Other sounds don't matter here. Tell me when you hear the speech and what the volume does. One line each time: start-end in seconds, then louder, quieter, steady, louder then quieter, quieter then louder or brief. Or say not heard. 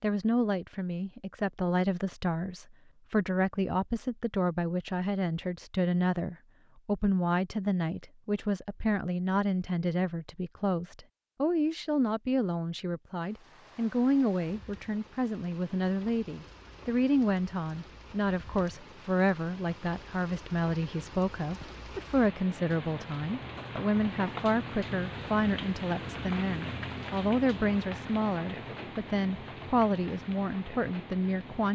0.0-31.7 steady.